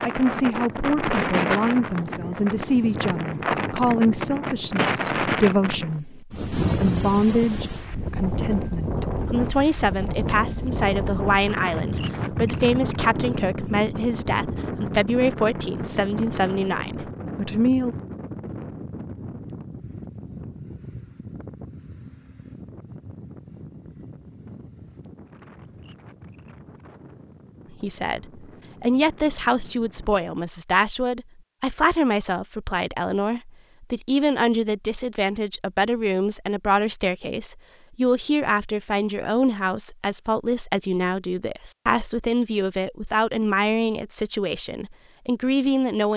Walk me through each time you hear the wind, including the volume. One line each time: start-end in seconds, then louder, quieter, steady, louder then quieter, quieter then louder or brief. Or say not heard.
0.0-30.2 quieter.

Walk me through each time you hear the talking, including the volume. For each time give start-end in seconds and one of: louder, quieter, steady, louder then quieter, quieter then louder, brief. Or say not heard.
0.1-17.9 steady
27.7-46.1 steady.